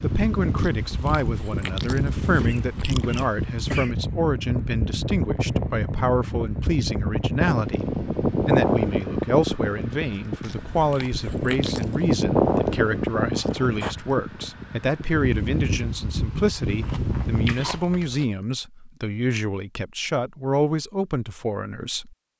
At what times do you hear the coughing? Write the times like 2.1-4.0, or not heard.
2.4-4.0, 13.3-13.9.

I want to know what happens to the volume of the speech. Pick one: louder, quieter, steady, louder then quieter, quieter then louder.
steady.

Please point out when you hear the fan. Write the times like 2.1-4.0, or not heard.
0.0-17.6.